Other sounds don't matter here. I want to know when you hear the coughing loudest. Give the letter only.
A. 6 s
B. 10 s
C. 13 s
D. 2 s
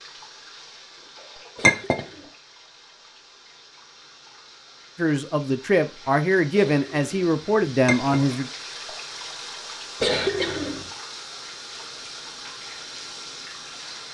B.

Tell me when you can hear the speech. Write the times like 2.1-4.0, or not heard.
5.0-8.5.